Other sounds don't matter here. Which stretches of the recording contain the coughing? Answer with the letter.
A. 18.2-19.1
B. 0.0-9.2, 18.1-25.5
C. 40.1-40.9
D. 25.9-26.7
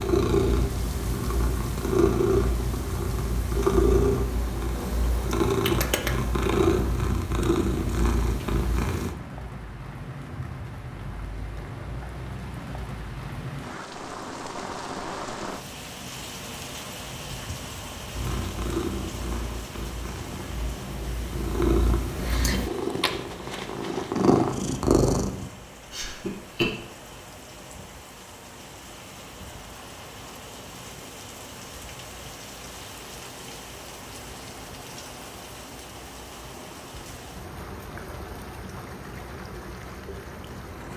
D.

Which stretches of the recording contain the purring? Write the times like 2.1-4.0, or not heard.
0.0-9.2, 18.1-25.5.